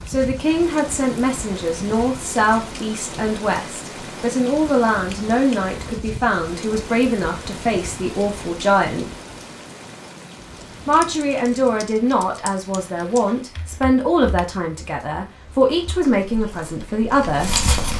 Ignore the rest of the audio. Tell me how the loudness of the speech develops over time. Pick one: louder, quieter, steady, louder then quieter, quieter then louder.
steady.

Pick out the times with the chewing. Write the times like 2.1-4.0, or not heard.
15.9-17.9.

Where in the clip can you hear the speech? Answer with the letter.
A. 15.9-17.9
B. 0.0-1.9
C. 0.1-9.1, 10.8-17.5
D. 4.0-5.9
C.